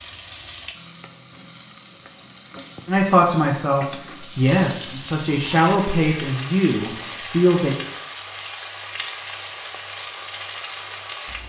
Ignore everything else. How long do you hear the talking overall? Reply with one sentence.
You can hear the talking for 5 seconds altogether.